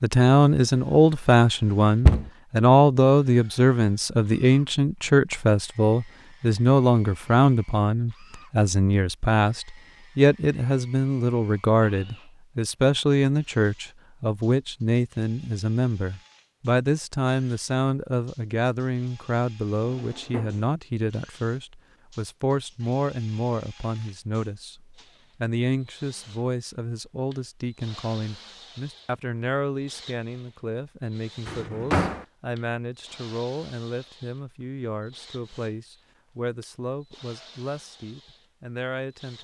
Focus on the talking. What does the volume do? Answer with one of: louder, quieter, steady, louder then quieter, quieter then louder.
quieter.